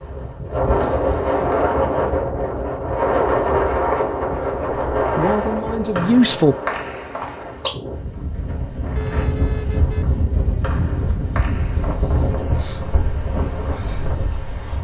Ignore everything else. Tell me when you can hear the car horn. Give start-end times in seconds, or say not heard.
8.9-10.1.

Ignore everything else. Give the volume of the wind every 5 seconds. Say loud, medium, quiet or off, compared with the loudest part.
loud, medium, medium.